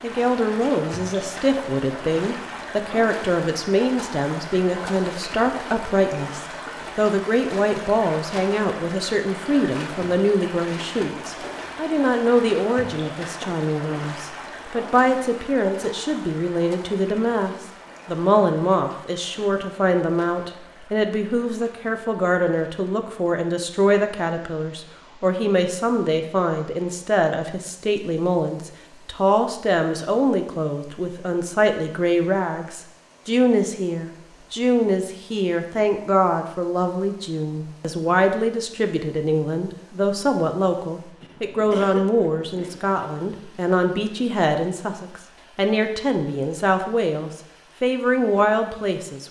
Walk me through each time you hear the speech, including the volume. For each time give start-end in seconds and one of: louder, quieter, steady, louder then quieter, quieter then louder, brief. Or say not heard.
0.0-49.2 steady.